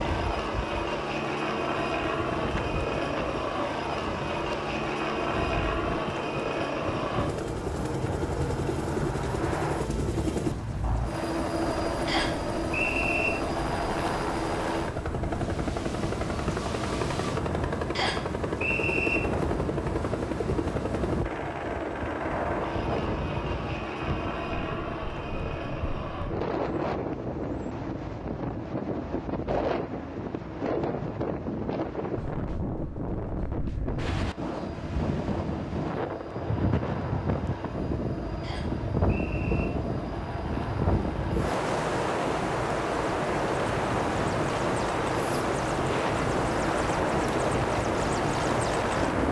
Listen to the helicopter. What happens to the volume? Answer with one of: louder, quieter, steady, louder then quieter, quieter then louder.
quieter then louder.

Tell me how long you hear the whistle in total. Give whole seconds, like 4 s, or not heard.
4 s.